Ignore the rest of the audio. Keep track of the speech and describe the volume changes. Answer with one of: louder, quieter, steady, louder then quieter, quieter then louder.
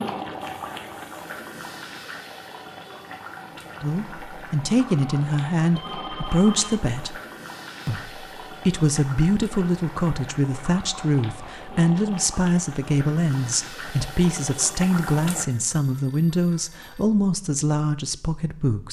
steady.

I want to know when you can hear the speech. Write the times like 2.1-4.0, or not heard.
3.8-7.2, 7.8-18.8.